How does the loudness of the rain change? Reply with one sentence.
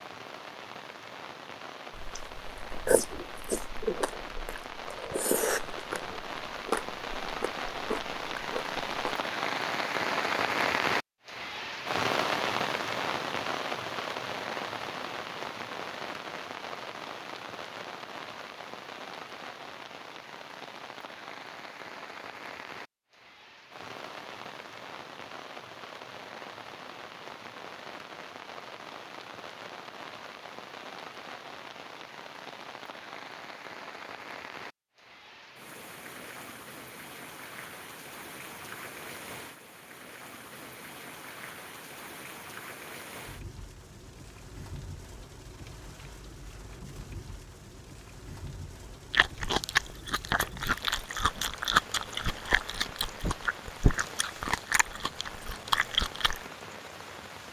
The volume of the rain goes down.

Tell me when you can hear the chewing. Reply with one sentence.
You can hear the chewing from 1.9 to 9.2 s and from 49.1 to 56.4 s.